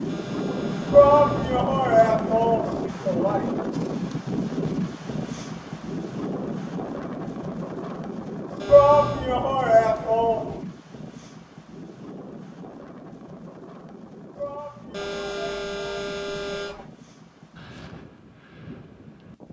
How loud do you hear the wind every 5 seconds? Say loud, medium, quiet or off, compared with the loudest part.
loud, medium, quiet, quiet.